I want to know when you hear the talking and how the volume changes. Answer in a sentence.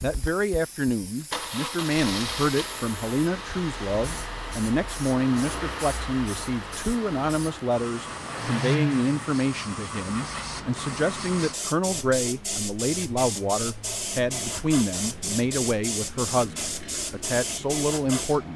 The talking can be heard from 0.0 to 18.5 s, at a steady volume.